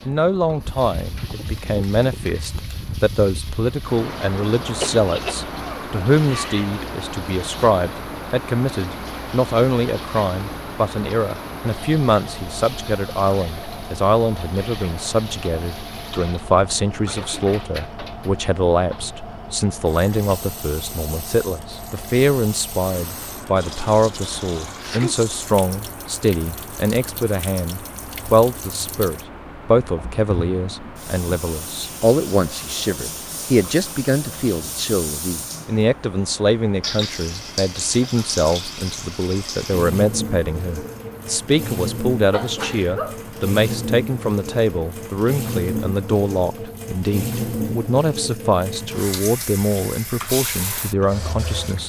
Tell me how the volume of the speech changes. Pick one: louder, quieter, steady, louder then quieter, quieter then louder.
steady.